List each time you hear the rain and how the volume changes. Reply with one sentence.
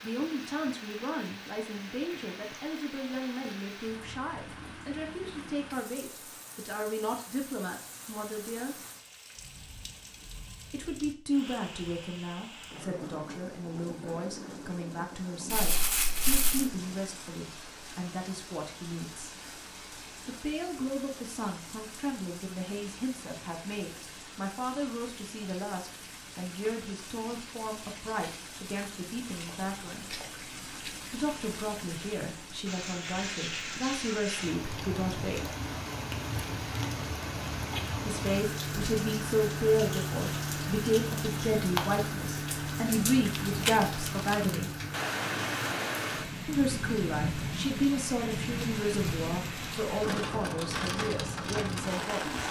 The rain can be heard from 0.0 to 52.4 s, getting louder.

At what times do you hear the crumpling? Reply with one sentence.
The crumpling can be heard from 15.5 to 16.7 s and from 43.3 to 44.6 s.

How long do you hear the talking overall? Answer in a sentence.
You can hear the talking for 44 seconds altogether.